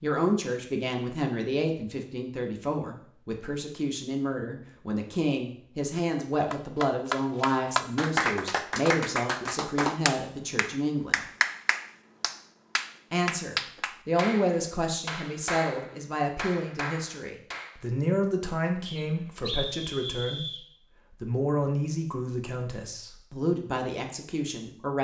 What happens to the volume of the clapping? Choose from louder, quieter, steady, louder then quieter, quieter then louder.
quieter.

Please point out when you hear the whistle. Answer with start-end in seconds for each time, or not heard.
18.9-20.6.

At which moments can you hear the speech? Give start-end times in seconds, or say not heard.
0.0-11.2, 13.1-24.9.